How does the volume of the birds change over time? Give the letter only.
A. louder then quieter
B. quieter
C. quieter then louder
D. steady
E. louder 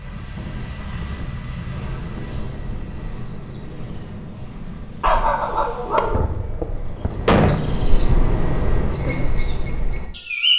E.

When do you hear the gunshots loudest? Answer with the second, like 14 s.
7 s.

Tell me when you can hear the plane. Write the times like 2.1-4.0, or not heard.
0.0-6.2.